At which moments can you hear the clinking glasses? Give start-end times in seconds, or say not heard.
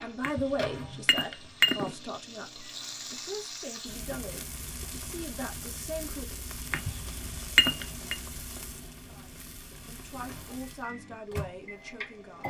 0.2-1.9, 6.7-8.2.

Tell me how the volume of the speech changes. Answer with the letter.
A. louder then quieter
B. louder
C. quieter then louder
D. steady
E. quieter
E.